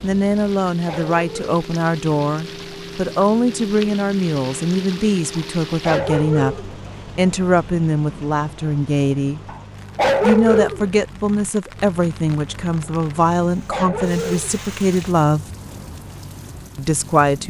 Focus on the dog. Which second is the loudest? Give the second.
10 s.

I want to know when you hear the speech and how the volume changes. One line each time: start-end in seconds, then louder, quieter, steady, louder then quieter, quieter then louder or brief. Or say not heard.
0.0-9.4 steady
10.2-15.4 steady
16.8-17.4 brief.